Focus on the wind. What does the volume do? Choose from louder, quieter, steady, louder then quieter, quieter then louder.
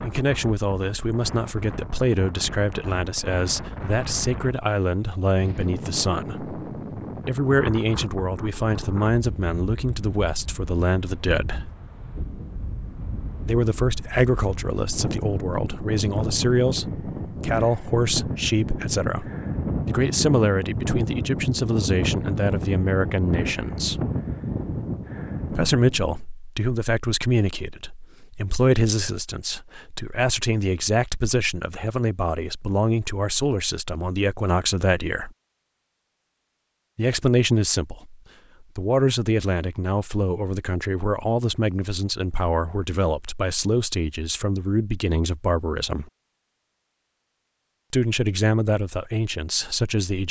louder.